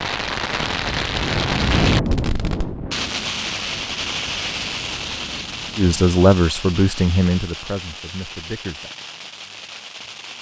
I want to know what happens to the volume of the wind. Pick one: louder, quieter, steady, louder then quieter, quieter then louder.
quieter.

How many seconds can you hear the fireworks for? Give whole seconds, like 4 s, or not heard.
10 s.